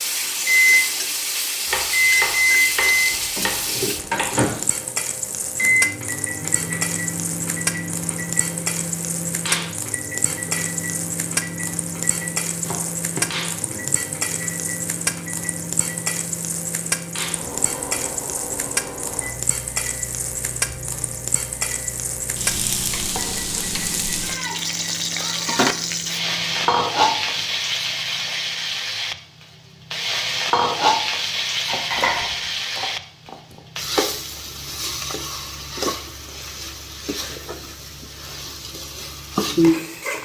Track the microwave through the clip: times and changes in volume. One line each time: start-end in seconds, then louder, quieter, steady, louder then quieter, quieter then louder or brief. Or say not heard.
0.0-27.6 quieter.